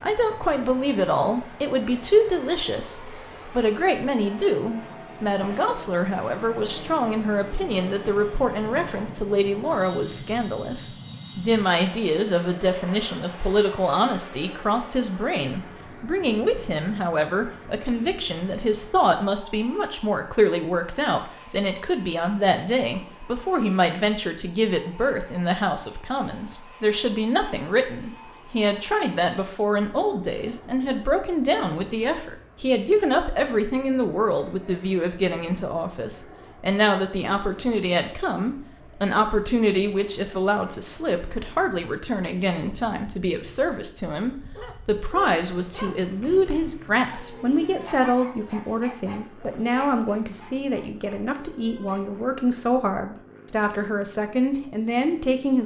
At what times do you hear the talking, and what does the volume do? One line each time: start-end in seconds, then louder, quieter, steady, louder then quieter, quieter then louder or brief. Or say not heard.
0.0-55.6 steady.